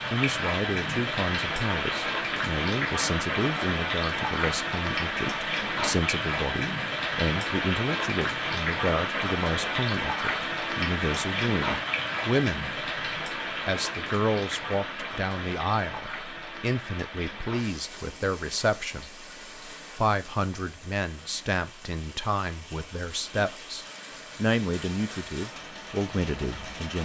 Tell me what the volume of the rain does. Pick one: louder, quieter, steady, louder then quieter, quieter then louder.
quieter.